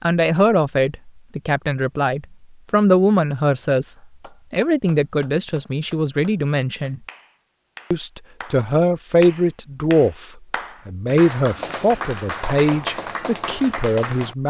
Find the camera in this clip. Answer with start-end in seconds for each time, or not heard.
not heard.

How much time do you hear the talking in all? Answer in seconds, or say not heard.
13 s.